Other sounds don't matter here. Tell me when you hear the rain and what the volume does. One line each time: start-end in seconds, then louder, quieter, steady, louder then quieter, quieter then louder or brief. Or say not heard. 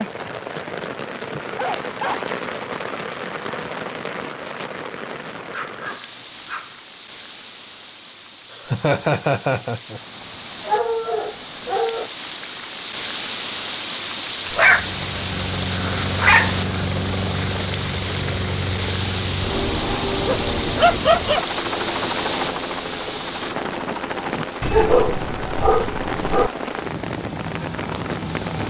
0.0-28.6 quieter then louder.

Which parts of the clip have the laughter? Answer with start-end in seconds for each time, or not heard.
8.5-10.0.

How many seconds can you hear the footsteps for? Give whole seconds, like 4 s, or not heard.
not heard.